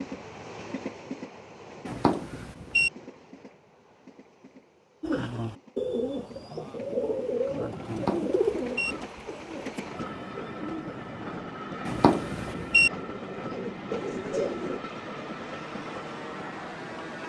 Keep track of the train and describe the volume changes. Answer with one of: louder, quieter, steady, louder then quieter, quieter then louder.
quieter then louder.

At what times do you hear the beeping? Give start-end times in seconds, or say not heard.
1.9-2.9, 7.8-8.9, 11.8-12.9.